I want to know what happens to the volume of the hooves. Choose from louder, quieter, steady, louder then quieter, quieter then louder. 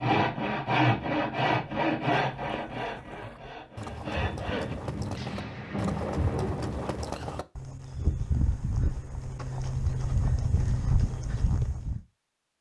louder.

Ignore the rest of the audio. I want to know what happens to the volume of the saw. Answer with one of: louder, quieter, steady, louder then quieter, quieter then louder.
quieter.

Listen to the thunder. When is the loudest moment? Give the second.
6 s.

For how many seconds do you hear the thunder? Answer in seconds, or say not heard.
3 s.